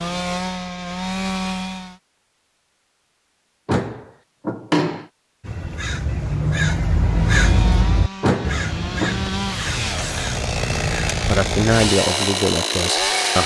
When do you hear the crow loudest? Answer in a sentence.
The volume of the crow peaks at 7 seconds.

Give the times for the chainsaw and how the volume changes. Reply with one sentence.
The chainsaw can be heard briefly from 0.0 to 2.0 s; and from 7.2 to 13.4 s, getting louder.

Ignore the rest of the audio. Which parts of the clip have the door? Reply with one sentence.
The door can be heard from 3.6 to 5.0 s and from 8.2 to 9.3 s.